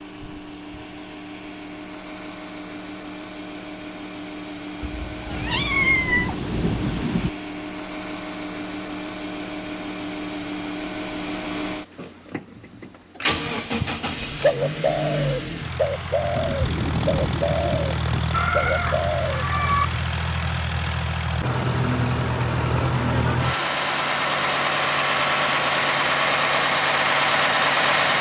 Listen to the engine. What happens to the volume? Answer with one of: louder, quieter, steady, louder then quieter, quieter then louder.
louder.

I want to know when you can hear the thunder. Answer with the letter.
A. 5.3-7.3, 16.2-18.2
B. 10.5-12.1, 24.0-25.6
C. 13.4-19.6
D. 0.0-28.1
A.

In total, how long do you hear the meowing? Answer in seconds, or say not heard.
3 s.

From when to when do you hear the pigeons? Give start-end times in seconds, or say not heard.
13.4-19.6.